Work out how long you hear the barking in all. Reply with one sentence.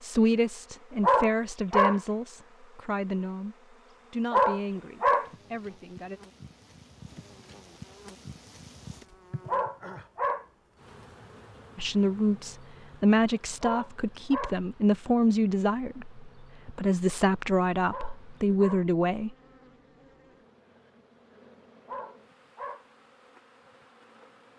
You can hear the barking for 6 seconds altogether.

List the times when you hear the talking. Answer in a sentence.
You can hear the talking from 0.0 to 6.2 s and from 11.8 to 19.4 s.